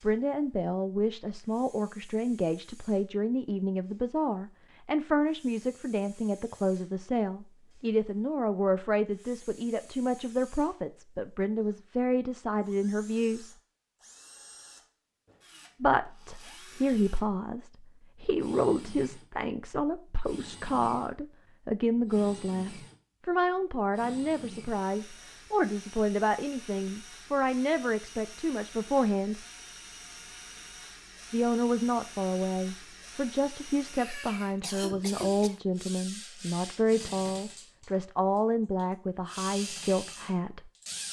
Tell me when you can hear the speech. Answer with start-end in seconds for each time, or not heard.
0.0-13.6, 15.8-29.4, 31.3-40.6.